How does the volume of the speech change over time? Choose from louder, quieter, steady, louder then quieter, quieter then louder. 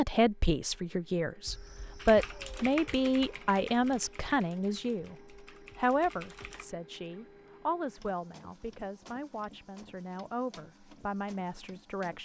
quieter.